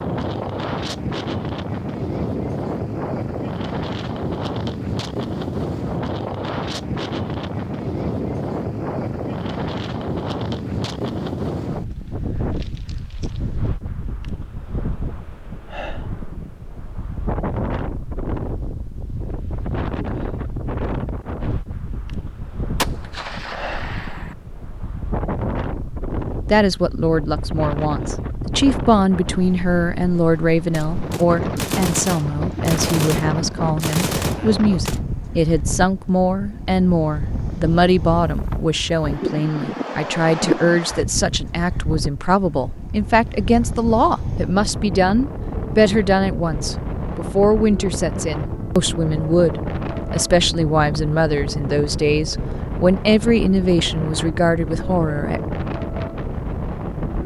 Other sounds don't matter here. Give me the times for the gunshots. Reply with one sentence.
The gunshots can be heard from 22.8 to 24.4 s and from 30.7 to 35.0 s.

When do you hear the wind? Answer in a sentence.
The wind can be heard from 0.0 to 57.2 s.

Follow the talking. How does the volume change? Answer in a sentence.
The volume of the talking stays about the same.